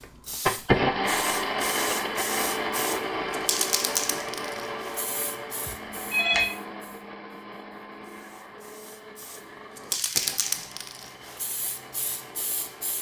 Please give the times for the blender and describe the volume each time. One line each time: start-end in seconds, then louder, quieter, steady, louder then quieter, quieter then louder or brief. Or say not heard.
0.0-12.9 quieter.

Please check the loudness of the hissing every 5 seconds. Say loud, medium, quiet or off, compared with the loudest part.
loud, medium, loud.